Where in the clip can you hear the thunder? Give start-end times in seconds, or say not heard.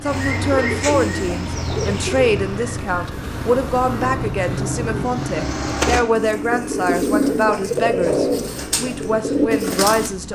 3.0-5.2.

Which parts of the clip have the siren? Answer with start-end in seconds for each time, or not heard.
not heard.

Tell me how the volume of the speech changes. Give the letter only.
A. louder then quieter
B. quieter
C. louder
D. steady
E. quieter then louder
D.